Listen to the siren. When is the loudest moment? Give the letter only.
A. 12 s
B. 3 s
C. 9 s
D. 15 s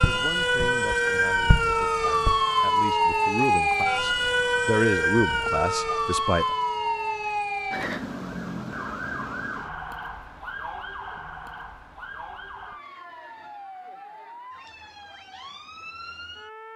B.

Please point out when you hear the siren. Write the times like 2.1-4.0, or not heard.
0.0-16.7.